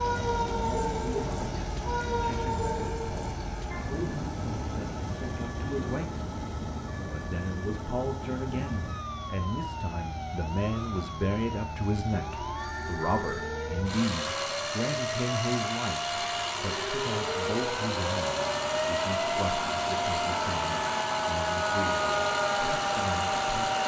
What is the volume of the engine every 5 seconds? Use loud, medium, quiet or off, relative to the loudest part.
medium, quiet, medium, loud, loud.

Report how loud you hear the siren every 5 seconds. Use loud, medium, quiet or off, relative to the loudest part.
loud, medium, medium, loud, loud.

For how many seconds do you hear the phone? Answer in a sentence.
You can hear the phone for 2 seconds altogether.